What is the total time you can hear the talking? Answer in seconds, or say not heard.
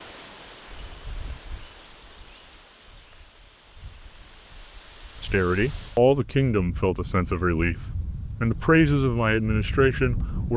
5 s.